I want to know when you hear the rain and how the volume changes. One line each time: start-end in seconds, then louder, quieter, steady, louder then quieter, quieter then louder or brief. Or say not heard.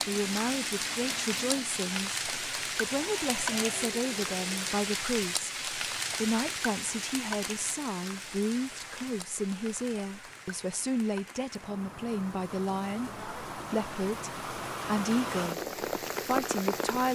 0.0-17.0 quieter then louder.